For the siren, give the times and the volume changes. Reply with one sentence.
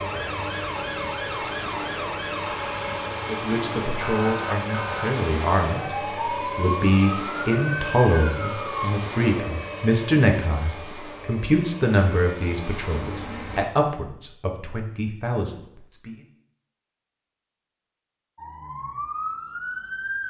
You can hear the siren from 0.0 to 8.9 s, at a steady volume; and briefly from 18.4 to 20.2 s.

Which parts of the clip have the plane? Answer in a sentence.
You can hear the plane from 0.0 to 13.7 s.